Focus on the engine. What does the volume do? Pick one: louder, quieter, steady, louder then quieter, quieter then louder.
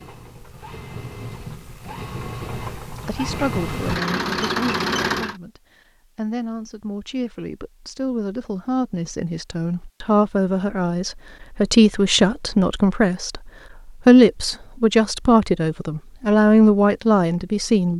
louder.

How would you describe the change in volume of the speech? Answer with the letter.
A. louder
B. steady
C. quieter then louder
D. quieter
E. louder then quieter
A.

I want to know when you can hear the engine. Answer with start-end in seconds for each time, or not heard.
0.0-5.3.